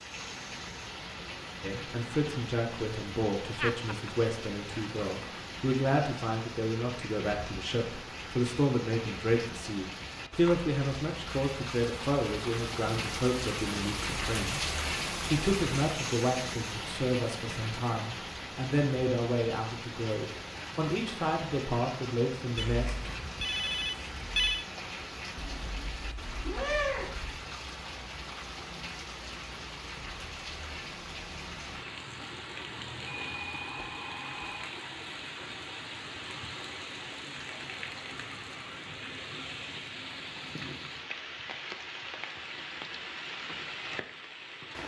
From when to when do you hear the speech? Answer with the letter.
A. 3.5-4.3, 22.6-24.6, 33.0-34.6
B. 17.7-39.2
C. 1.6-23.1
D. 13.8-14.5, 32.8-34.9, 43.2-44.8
C.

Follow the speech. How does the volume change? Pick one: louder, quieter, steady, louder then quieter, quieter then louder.
steady.